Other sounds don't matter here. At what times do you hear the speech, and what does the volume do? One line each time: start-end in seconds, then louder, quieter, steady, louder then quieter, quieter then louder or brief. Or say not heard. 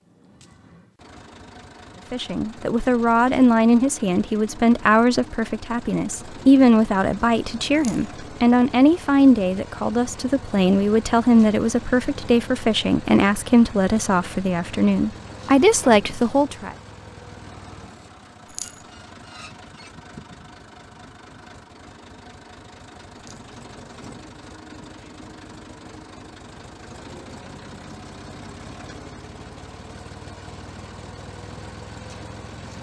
2.1-16.8 steady.